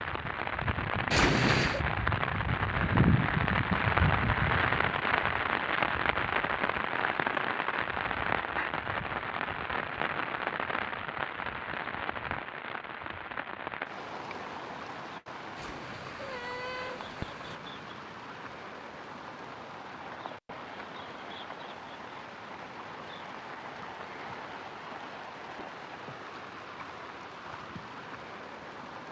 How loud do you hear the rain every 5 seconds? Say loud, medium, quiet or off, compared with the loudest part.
loud, loud, medium, quiet, quiet, quiet.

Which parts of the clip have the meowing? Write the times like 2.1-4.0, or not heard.
1.1-1.9, 15.6-17.6.